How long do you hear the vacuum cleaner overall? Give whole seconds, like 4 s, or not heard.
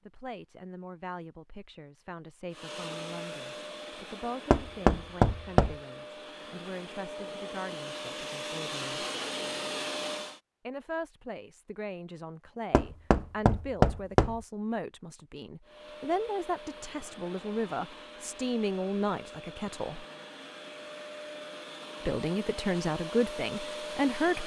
17 s.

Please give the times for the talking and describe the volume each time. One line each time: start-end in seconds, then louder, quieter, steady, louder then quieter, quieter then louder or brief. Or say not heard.
0.1-9.1 steady
10.7-20.1 louder
22.1-24.4 brief.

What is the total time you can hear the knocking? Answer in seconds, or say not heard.
3 s.